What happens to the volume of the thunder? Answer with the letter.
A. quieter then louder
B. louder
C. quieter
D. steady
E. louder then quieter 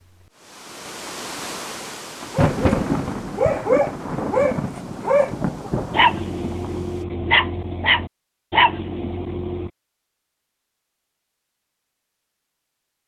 C.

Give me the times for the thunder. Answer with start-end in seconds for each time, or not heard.
2.2-6.9.